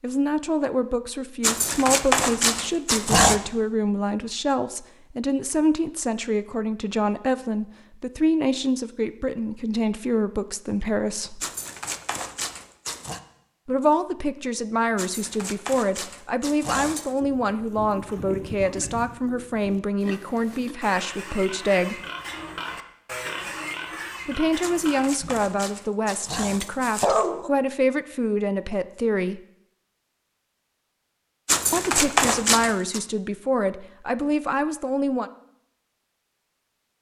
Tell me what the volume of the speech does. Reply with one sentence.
The volume of the speech stays about the same.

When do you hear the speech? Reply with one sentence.
You can hear the speech from 0.0 to 11.4 s, from 13.7 to 22.0 s, from 24.2 to 29.4 s and from 31.7 to 35.3 s.